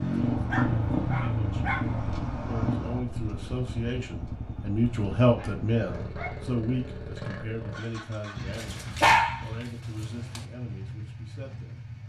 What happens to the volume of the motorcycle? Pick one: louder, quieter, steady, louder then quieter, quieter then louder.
quieter.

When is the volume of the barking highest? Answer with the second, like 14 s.
9 s.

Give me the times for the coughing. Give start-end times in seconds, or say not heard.
not heard.